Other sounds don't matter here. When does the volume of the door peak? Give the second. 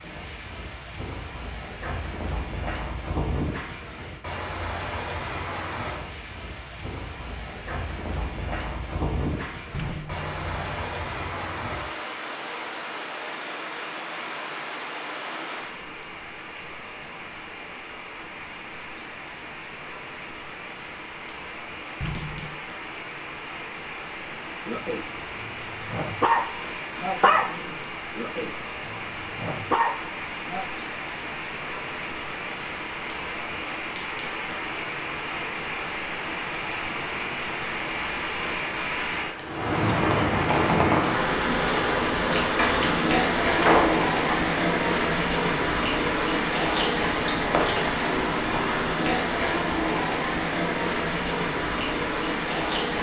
44 s.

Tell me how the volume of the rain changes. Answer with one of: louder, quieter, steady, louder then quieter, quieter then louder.
louder.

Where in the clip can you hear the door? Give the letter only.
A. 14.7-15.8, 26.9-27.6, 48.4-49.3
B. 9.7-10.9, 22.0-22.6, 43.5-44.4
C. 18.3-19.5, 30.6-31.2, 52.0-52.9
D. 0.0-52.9
B.